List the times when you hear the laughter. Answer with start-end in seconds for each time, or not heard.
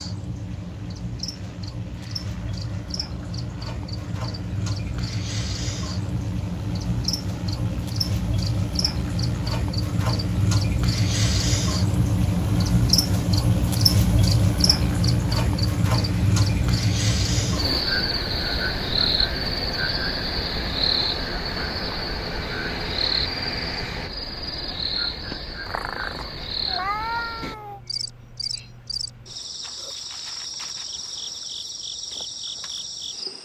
not heard.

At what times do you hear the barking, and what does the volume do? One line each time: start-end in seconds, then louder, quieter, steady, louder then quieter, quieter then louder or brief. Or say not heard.
not heard.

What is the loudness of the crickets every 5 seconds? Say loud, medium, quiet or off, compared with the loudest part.
medium, medium, loud, loud, medium, medium, medium.